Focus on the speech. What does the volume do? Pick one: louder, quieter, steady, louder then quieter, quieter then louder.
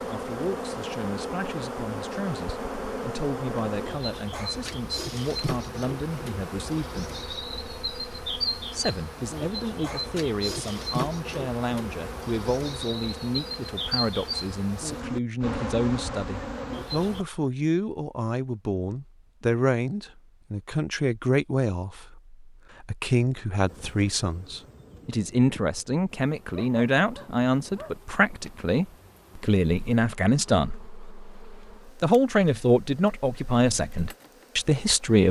louder.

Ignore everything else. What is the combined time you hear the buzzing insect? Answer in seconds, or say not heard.
29 s.